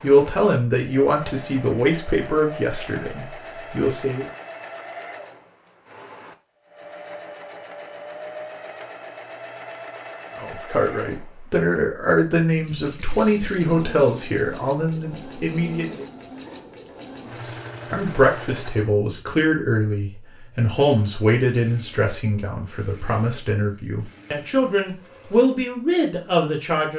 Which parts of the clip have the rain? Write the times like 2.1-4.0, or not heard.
not heard.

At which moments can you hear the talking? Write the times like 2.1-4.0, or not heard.
0.0-4.2, 10.3-16.1, 17.4-26.9.